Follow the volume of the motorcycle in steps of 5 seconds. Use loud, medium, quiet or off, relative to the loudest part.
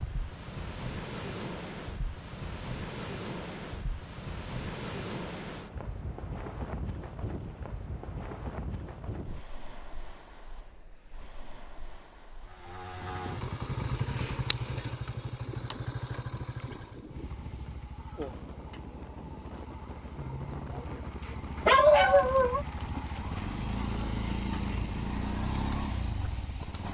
off, off, loud, medium, loud, loud.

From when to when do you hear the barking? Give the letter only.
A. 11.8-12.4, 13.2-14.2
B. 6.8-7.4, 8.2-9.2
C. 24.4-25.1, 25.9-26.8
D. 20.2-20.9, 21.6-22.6
D.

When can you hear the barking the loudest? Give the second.
22 s.